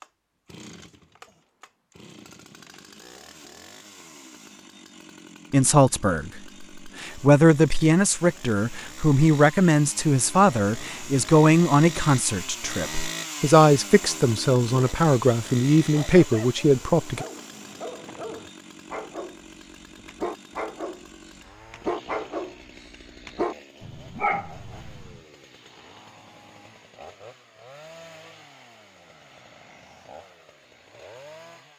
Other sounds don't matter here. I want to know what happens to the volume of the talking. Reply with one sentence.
The volume of the talking stays about the same.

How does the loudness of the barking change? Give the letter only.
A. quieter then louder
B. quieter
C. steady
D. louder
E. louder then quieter
D.